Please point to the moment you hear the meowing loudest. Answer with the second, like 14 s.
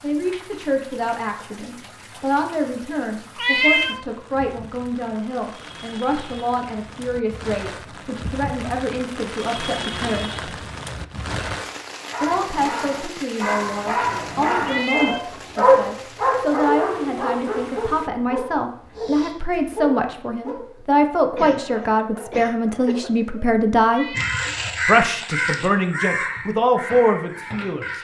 4 s.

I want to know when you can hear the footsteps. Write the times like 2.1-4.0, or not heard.
not heard.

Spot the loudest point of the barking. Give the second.
16 s.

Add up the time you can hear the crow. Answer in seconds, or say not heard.
4 s.